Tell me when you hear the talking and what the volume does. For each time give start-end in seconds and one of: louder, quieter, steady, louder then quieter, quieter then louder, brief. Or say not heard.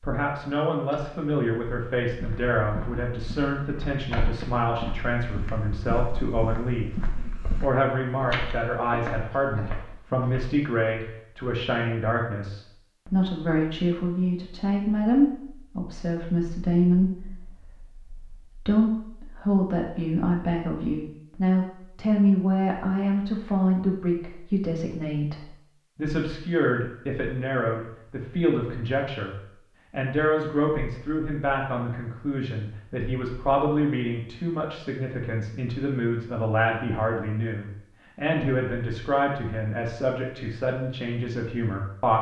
0.0-6.9 steady
7.6-42.1 steady.